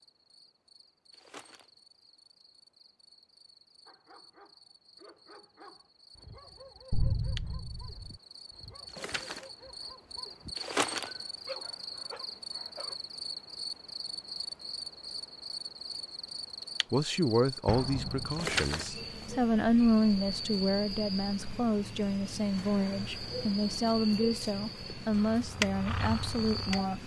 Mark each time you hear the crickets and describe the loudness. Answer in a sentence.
The crickets can be heard from 0.0 to 27.0 s, getting louder.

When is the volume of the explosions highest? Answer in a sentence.
The loudest moment of the explosions is at 7 seconds.